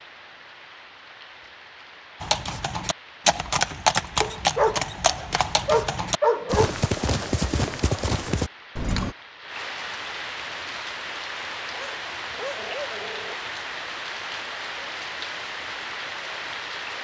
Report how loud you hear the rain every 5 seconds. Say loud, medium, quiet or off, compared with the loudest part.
quiet, medium, loud, loud.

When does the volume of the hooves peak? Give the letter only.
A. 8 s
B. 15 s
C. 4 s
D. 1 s
C.